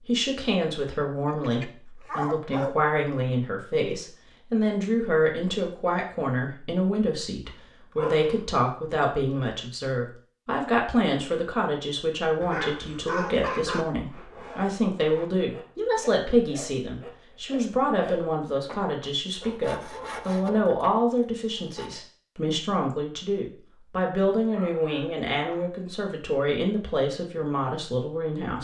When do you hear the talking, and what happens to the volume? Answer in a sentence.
You can hear the talking from 0.1 to 28.5 s, at a steady volume.